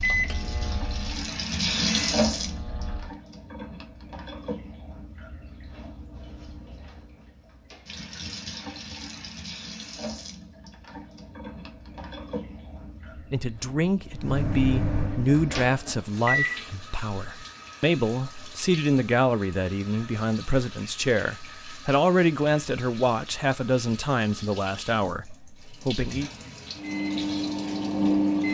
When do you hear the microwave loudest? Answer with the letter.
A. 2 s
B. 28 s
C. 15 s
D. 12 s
B.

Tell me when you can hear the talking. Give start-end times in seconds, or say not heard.
13.3-26.3.